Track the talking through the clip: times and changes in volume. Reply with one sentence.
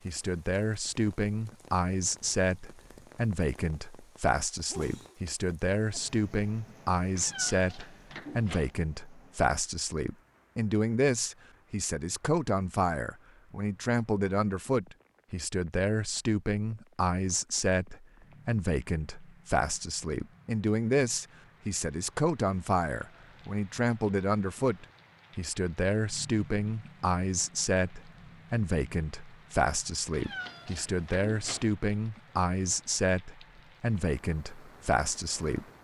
The talking can be heard from 0.1 to 35.6 s, at a steady volume.